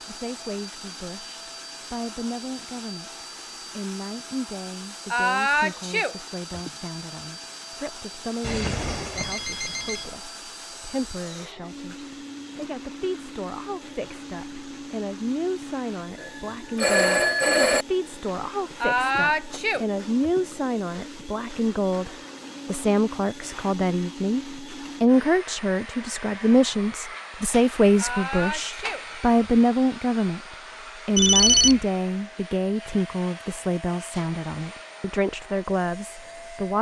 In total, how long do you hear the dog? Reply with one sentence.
The dog can't be heard in this clip.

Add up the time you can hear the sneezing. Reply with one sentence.
You can hear the sneezing for 5 seconds altogether.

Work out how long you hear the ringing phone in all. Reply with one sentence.
You can hear the ringing phone for 4 seconds altogether.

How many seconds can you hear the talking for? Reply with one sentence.
The talking can be heard for 36 seconds in total.